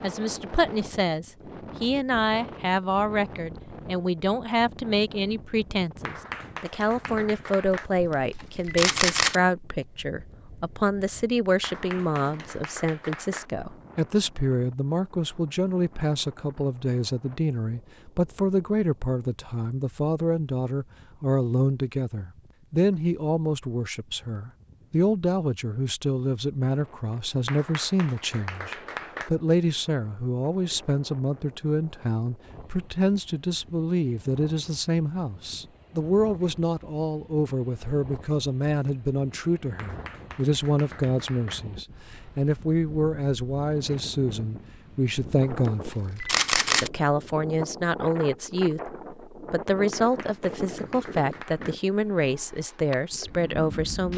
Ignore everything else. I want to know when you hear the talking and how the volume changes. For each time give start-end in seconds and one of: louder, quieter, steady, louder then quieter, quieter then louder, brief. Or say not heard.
0.0-54.1 steady.